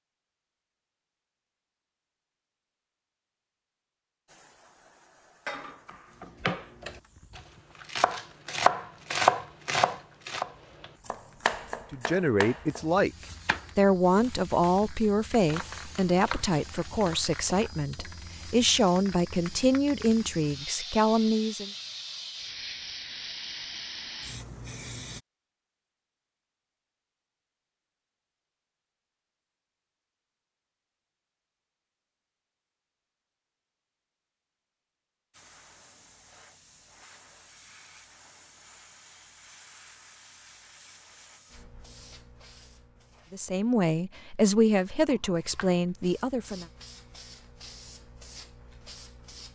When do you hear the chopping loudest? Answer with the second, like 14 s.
9 s.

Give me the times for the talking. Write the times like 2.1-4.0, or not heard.
11.9-13.1, 13.8-21.7, 43.3-46.6.